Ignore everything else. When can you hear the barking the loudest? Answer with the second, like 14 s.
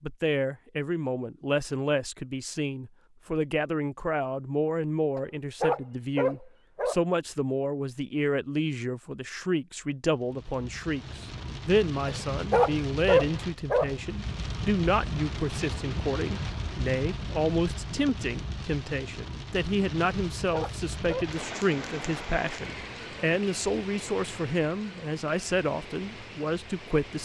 13 s.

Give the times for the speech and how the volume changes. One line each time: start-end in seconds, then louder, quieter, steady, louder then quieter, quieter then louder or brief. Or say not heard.
0.0-27.2 steady.